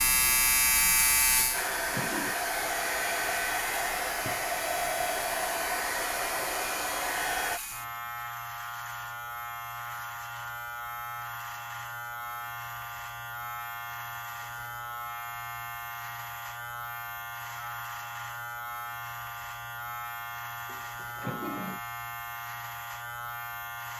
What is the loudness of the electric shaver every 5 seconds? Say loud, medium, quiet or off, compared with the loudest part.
loud, medium, medium, medium, medium.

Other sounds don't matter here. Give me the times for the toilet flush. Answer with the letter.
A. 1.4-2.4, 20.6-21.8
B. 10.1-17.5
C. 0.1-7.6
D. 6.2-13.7
A.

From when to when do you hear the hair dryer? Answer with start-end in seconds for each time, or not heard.
0.1-7.6.